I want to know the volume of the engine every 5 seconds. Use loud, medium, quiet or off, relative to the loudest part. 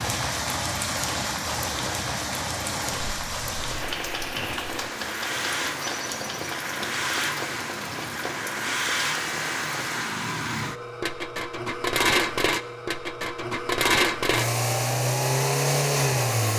quiet, medium, loud, loud.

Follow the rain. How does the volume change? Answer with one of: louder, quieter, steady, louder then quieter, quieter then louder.
quieter.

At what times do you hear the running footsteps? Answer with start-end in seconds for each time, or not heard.
not heard.